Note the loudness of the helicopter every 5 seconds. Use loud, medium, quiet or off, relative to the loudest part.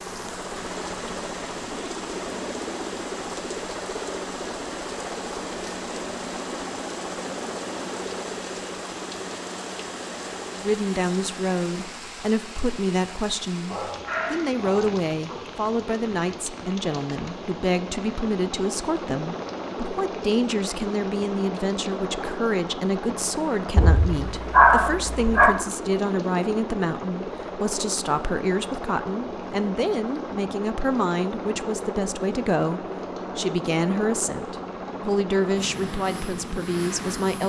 loud, loud, medium, loud, loud, loud, loud, loud.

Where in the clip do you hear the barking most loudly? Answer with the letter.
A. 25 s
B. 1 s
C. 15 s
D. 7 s
A.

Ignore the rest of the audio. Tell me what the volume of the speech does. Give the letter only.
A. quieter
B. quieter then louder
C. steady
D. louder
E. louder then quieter
C.